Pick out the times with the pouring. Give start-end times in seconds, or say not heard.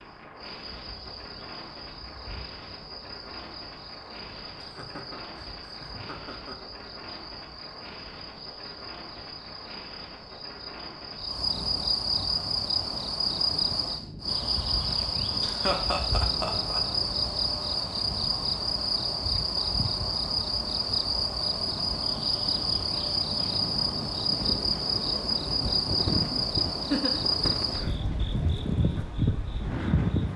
not heard.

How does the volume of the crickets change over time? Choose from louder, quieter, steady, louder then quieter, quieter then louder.
louder.